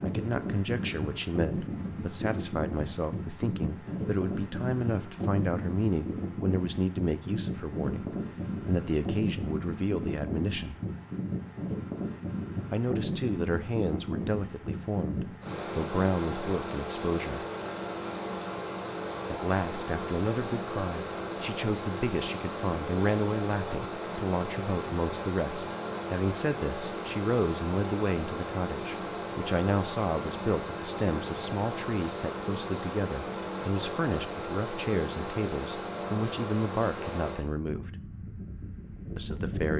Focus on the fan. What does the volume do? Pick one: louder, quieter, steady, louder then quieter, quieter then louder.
steady.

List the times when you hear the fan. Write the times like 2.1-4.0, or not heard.
0.0-39.7.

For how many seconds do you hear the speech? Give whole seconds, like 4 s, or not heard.
35 s.